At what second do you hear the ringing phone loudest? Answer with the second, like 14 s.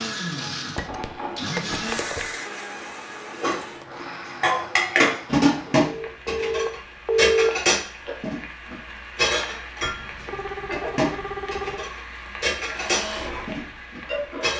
7 s.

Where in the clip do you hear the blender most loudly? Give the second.
2 s.